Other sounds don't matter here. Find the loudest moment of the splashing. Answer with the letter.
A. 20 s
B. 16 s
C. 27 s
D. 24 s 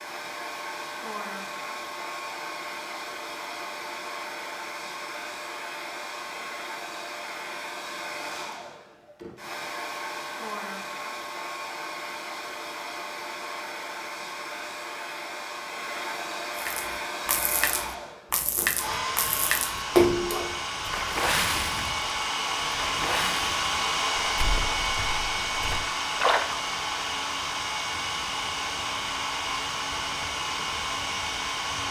A.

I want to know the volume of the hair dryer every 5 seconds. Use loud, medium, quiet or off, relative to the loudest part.
medium, medium, medium, medium, loud, loud, loud.